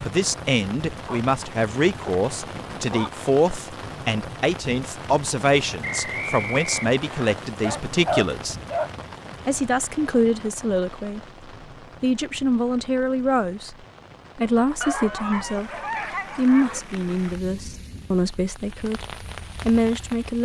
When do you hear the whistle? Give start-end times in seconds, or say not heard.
5.8-7.3.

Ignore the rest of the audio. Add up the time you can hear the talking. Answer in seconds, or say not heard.
18 s.